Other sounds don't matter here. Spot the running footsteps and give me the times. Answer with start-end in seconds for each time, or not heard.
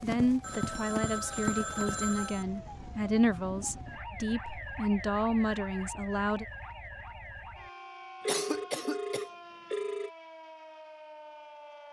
0.0-2.0.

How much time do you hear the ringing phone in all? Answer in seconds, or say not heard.
4 s.